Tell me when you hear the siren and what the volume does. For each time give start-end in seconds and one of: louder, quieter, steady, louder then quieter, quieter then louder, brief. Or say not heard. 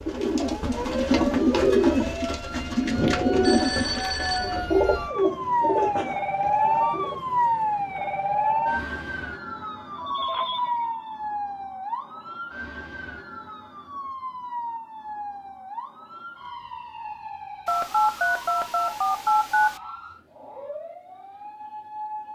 0.0-22.3 louder then quieter.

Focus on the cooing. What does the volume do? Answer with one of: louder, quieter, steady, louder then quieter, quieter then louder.
quieter.